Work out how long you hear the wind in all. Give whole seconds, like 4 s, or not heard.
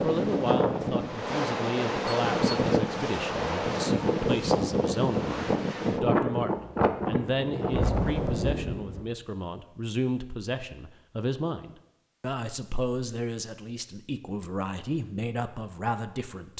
9 s.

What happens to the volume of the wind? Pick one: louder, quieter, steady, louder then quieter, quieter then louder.
steady.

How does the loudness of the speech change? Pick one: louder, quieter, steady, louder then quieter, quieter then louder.
steady.